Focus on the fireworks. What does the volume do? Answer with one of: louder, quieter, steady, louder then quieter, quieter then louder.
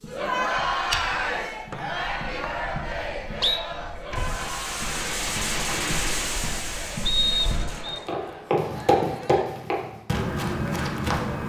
quieter.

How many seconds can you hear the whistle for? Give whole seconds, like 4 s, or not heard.
3 s.